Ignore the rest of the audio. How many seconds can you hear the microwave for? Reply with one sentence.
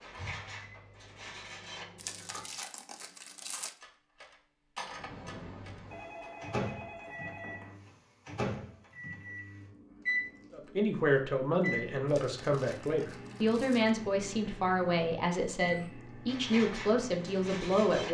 The microwave can be heard for 16 seconds in total.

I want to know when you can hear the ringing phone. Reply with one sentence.
The ringing phone can be heard from 5.9 to 7.8 s.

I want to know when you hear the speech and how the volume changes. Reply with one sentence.
The speech can be heard from 10.5 to 18.0 s, at a steady volume.